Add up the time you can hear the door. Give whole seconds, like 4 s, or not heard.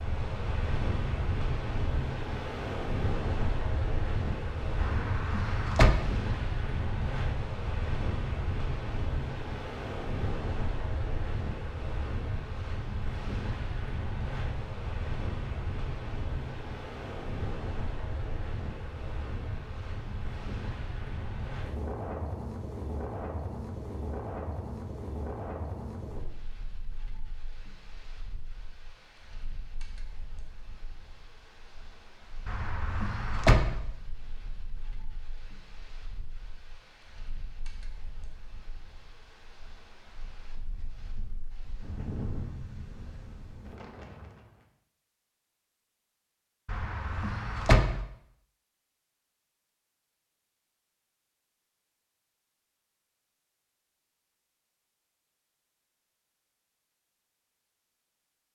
4 s.